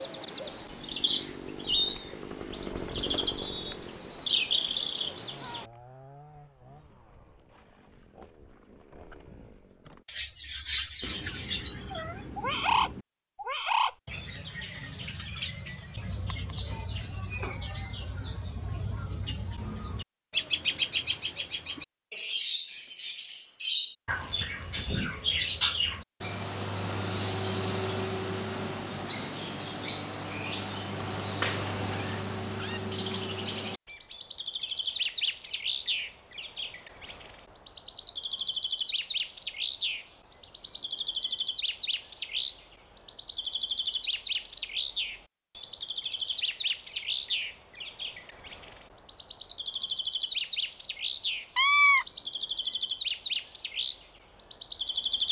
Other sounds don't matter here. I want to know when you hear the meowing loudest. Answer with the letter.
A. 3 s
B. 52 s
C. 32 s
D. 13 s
B.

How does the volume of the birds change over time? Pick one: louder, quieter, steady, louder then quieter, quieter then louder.
steady.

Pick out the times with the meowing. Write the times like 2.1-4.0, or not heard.
11.0-13.1, 31.2-32.8, 51.5-52.0.